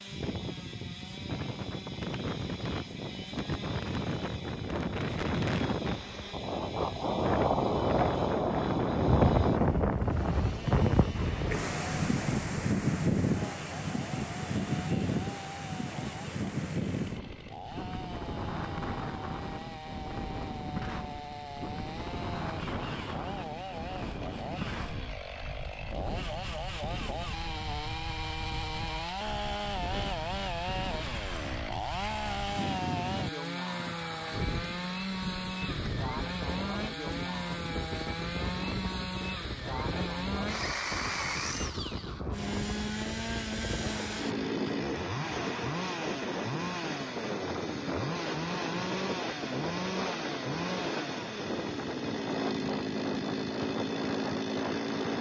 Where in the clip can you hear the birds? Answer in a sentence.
The birds can't be heard in this clip.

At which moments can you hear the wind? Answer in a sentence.
The wind can be heard from 0.0 to 55.1 s.